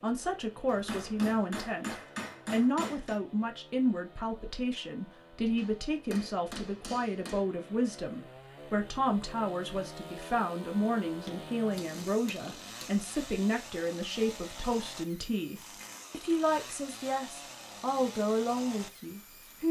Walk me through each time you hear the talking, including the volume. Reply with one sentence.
You can hear the talking from 0.0 to 19.6 s, at a steady volume.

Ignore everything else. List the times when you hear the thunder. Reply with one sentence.
You can't hear the thunder here.